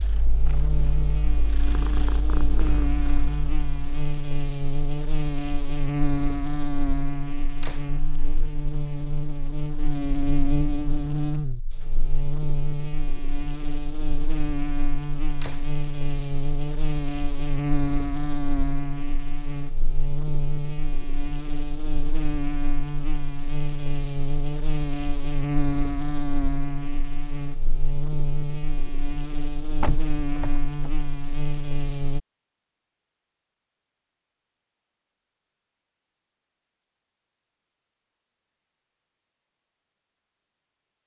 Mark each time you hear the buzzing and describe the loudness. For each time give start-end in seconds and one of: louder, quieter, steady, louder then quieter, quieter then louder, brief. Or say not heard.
0.0-32.2 steady.